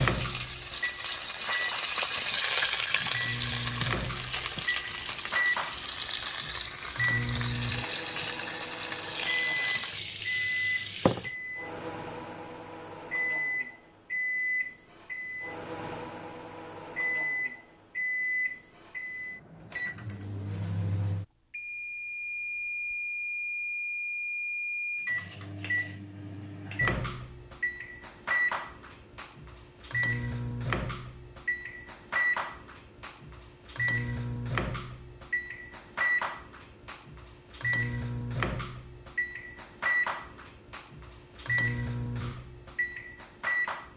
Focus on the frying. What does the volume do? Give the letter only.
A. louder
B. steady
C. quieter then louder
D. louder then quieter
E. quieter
E.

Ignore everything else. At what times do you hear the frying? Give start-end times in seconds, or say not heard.
0.0-11.3.